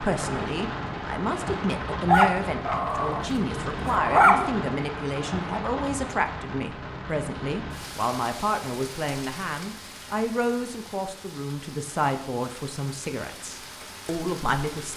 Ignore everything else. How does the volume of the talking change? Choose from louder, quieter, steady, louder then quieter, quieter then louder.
steady.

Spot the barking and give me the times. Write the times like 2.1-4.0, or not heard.
2.0-4.5.